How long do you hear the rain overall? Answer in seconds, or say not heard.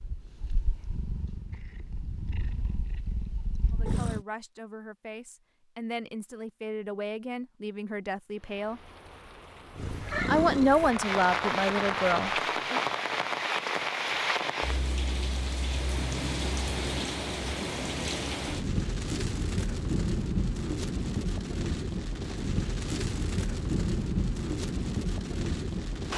18 s.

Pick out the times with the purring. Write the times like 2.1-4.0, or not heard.
0.0-4.2, 9.8-12.2.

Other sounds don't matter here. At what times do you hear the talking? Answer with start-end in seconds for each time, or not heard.
3.7-8.8, 10.2-12.8.